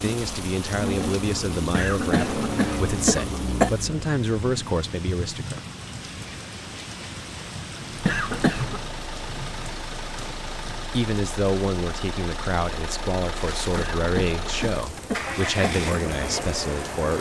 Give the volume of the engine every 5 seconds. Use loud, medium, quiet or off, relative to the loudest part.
loud, medium, medium, loud.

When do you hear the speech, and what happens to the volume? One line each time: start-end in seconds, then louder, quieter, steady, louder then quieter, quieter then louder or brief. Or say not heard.
0.0-5.6 steady
10.9-17.1 steady.